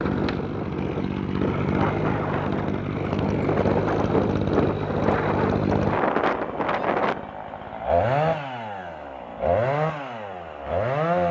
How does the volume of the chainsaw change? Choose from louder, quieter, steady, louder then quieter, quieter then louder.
steady.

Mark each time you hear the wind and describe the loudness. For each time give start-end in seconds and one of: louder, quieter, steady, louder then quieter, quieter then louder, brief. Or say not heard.
0.0-7.3 louder.